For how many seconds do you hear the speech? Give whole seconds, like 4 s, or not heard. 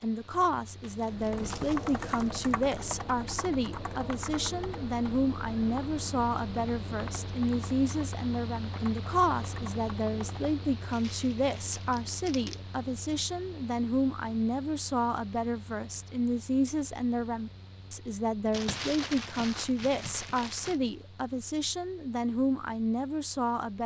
24 s.